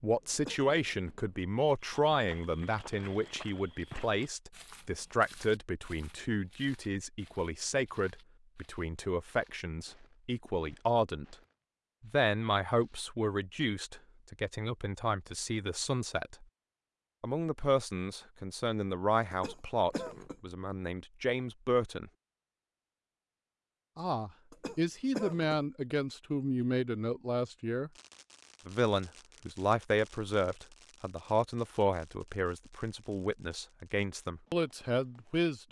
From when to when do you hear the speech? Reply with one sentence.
The speech can be heard from 0.0 to 11.3 s, from 12.0 to 16.4 s, from 17.2 to 22.1 s, from 23.9 to 27.9 s and from 28.6 to 35.6 s.